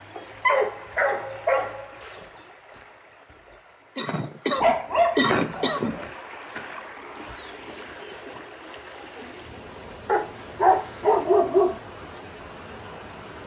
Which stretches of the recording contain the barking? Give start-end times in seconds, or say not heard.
0.1-2.2, 4.5-6.1, 10.1-11.8.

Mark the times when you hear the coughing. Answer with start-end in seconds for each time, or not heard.
4.0-6.0.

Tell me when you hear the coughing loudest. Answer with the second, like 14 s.
5 s.